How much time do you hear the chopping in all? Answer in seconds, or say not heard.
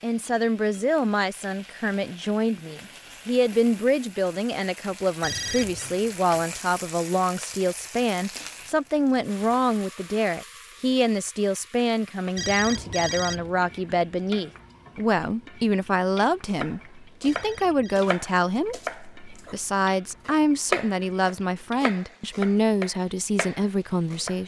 7 s.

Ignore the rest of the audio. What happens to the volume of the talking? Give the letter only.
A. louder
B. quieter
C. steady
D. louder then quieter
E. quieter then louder
C.